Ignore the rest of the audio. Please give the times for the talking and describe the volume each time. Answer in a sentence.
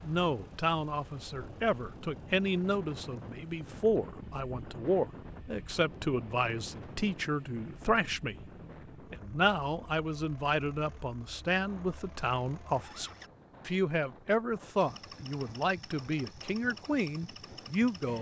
You can hear the talking from 0.0 to 8.3 s, at a steady volume; and from 9.1 to 18.1 s, at a steady volume.